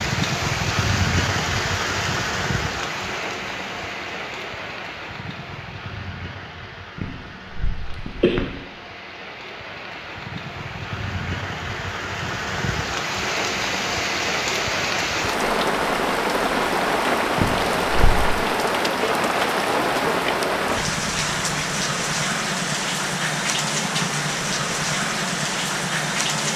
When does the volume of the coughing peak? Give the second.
8 s.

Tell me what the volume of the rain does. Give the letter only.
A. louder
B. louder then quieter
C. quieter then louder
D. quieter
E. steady
C.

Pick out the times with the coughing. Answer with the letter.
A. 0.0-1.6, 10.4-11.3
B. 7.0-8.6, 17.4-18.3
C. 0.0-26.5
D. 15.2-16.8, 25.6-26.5
B.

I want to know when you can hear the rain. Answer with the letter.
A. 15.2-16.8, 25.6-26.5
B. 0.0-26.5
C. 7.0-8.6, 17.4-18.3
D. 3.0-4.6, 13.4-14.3
B.